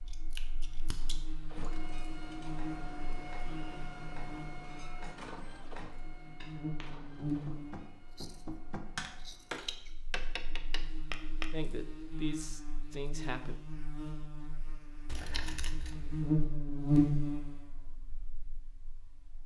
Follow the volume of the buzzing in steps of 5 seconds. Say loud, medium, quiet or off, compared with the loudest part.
quiet, medium, quiet, loud.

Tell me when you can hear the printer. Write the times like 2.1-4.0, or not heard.
0.0-9.8.